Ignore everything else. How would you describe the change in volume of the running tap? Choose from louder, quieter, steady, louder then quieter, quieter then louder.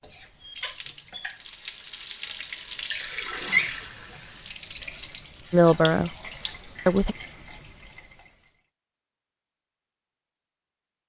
louder then quieter.